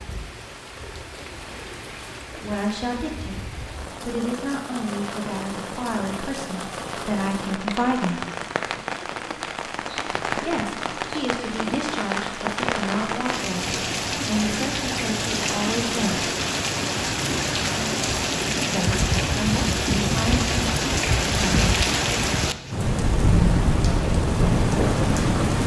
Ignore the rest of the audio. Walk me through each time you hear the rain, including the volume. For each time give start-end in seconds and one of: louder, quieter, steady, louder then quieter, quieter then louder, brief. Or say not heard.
0.0-25.6 louder.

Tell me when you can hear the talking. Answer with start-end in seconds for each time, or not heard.
2.4-8.2, 10.3-16.3, 18.7-21.6.